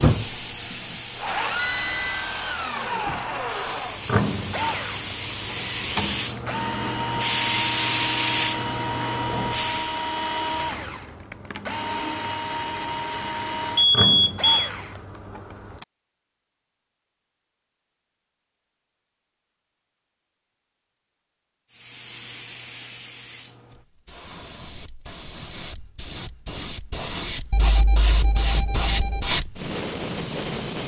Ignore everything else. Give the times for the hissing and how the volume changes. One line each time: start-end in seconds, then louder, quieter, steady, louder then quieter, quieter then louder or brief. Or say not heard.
0.0-10.0 louder
21.7-30.8 louder.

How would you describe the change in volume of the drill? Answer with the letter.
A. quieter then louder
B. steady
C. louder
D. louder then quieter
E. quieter
B.